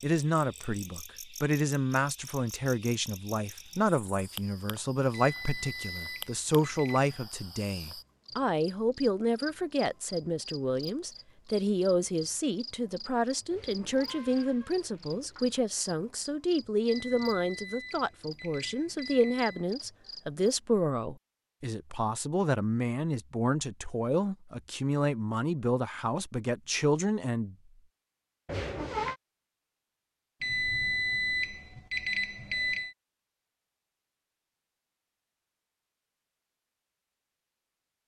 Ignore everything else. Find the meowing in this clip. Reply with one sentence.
The meowing can be heard from 13.5 to 15.6 s and from 28.4 to 29.1 s.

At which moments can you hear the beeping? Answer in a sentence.
The beeping can be heard from 5.1 to 7.2 s, from 16.9 to 19.6 s and from 30.4 to 33.0 s.